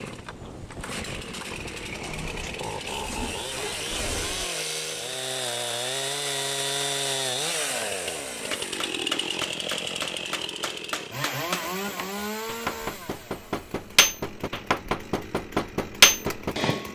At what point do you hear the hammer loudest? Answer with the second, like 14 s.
16 s.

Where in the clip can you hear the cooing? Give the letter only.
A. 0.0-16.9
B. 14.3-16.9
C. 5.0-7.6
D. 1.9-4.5
D.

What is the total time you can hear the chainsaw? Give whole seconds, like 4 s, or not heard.
17 s.